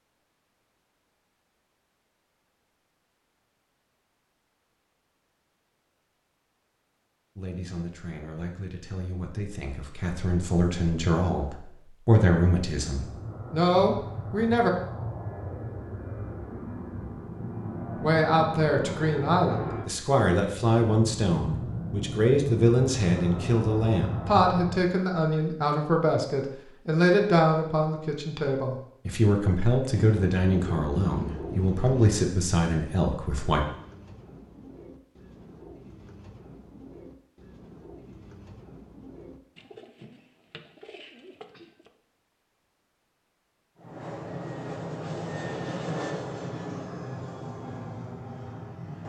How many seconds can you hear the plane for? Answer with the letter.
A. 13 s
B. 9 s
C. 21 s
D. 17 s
D.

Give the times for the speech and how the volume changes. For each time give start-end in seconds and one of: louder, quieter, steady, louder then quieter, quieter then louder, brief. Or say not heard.
7.3-14.7 louder
18.0-33.6 steady.